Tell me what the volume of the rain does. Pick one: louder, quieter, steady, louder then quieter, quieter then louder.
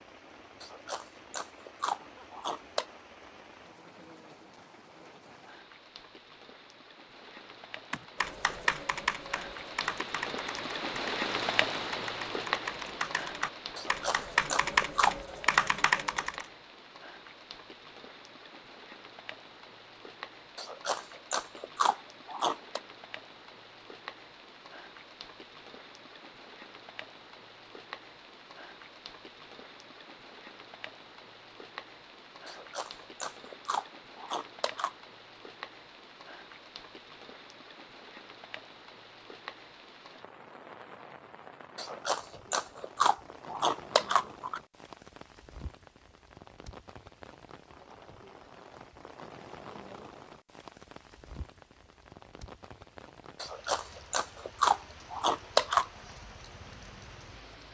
quieter.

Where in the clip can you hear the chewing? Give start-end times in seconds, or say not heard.
0.6-2.9, 13.8-15.2, 20.6-22.8, 32.5-35.0, 41.8-44.6, 53.4-55.9.